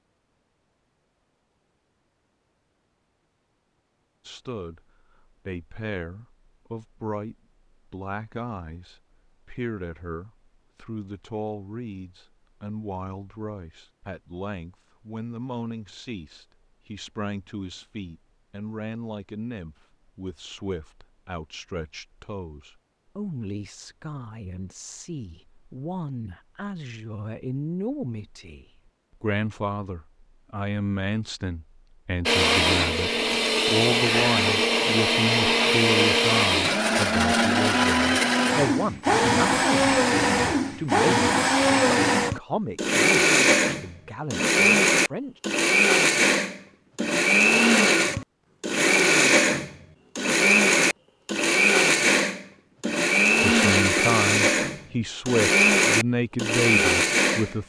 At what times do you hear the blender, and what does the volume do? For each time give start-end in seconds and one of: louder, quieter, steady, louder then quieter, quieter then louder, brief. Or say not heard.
32.2-57.5 steady.